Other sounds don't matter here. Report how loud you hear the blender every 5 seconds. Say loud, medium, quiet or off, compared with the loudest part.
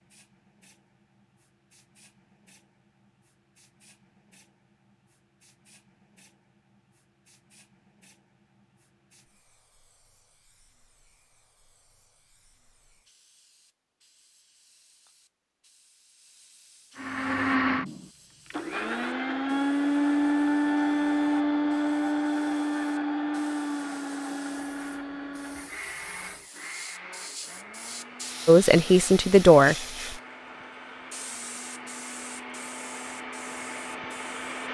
off, off, off, loud, loud, quiet, quiet.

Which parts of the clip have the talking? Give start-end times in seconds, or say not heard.
28.4-29.8.